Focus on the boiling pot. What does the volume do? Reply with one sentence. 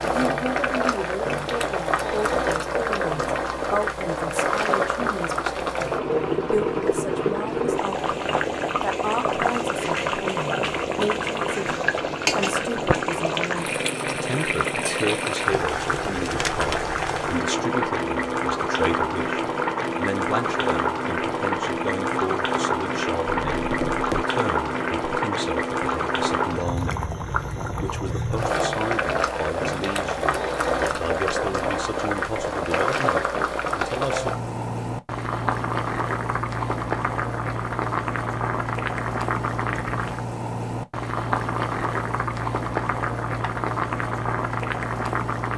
The volume of the boiling pot stays about the same.